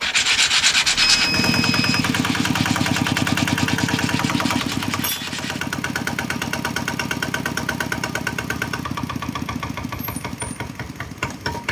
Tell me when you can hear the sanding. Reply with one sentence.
The sanding can be heard from 0.0 to 5.6 s.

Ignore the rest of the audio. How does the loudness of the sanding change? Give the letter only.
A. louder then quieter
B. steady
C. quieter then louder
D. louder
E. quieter
E.